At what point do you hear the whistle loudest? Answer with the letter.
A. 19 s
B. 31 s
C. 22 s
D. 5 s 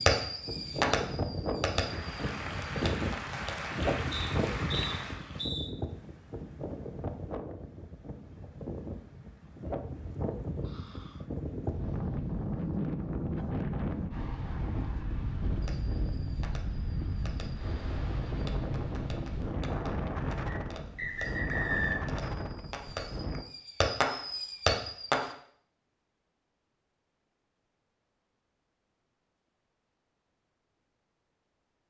C.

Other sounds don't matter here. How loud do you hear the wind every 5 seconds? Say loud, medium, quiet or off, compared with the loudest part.
loud, medium, loud, loud, loud, off, off.